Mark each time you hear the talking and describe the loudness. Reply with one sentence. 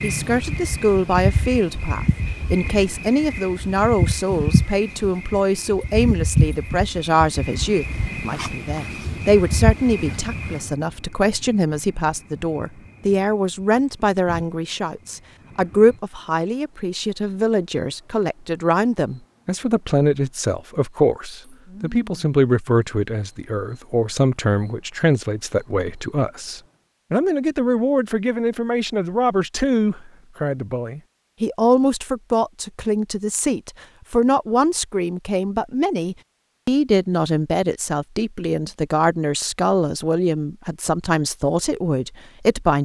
You can hear the talking from 0.0 to 42.8 s, at a steady volume.